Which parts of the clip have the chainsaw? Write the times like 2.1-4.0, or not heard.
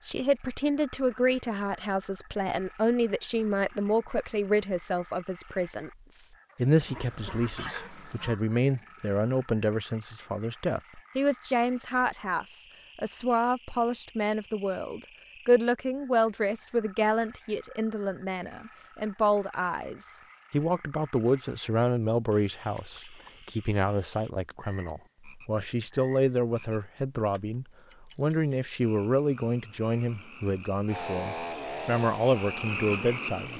30.9-33.5.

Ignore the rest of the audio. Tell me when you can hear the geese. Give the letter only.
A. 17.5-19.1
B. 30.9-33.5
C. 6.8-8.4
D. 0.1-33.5
C.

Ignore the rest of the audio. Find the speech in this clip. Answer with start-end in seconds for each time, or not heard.
0.1-33.5.